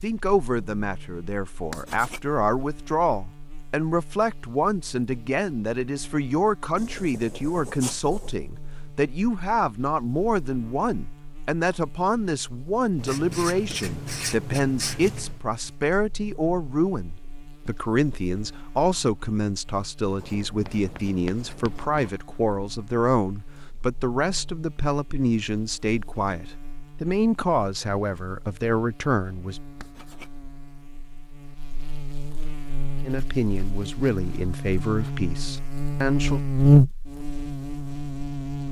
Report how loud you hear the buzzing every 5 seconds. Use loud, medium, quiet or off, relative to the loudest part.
quiet, quiet, quiet, quiet, quiet, quiet, quiet, loud.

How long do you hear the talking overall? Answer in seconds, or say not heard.
33 s.